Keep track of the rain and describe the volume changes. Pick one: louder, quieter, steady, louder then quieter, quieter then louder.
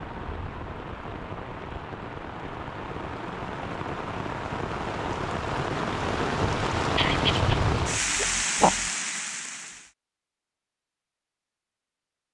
louder.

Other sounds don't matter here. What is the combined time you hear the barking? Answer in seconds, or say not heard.
2 s.